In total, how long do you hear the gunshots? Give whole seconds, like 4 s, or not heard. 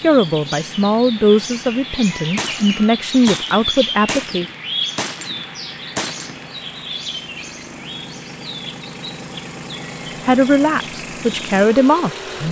4 s.